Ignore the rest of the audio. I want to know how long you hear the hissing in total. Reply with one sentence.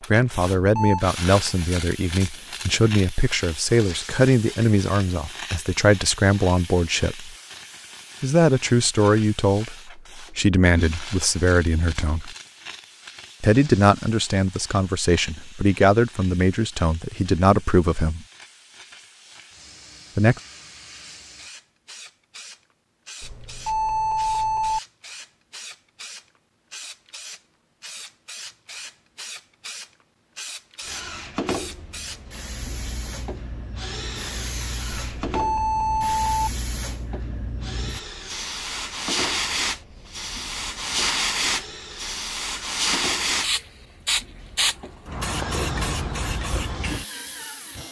You can hear the hissing for 48 seconds altogether.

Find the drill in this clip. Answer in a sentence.
The drill can be heard from 30.8 to 47.8 s.